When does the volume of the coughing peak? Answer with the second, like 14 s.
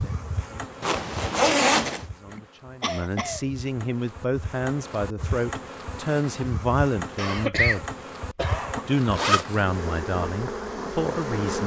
8 s.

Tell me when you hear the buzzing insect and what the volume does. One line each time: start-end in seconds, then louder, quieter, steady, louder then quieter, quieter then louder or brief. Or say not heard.
0.0-11.6 louder.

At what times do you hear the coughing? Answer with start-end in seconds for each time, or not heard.
2.3-3.9, 7.2-8.8.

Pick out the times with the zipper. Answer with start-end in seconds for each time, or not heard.
0.8-2.0, 8.5-9.4.